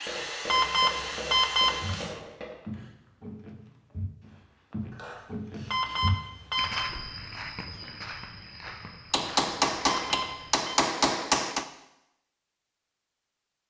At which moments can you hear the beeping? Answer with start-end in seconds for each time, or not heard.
0.5-2.1, 5.7-6.9, 9.8-10.8.